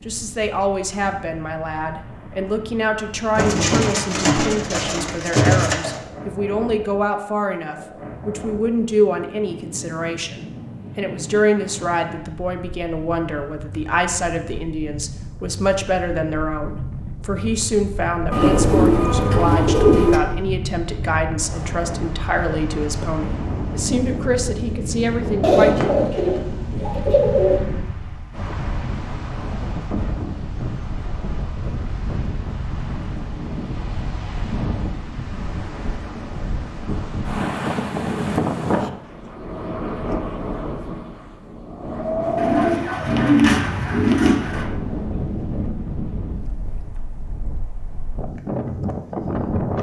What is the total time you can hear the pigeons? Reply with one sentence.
The pigeons can be heard for 9 seconds in total.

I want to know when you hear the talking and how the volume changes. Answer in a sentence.
You can hear the talking from 0.0 to 25.9 s, at a steady volume.